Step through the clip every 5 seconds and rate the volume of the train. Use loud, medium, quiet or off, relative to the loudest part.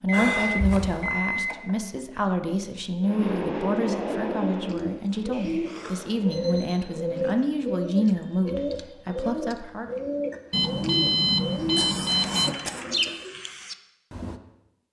loud, quiet, off.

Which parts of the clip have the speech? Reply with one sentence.
You can hear the speech from 0.0 to 9.9 s.